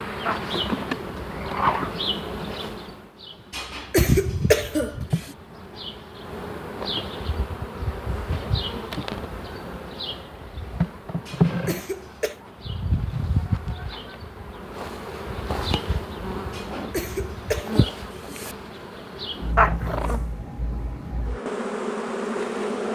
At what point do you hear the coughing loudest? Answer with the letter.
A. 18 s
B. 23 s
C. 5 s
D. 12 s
C.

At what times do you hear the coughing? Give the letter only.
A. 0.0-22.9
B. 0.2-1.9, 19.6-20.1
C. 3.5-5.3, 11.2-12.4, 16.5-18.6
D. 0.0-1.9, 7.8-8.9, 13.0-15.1
C.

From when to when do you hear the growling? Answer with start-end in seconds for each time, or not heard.
0.2-1.9, 19.6-20.1.